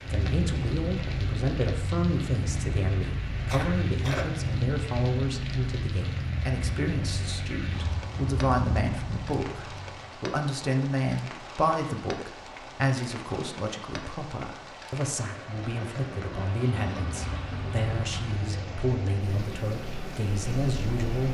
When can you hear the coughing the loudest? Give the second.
4 s.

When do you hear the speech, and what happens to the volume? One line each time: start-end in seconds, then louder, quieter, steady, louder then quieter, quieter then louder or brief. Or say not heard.
0.1-21.2 steady.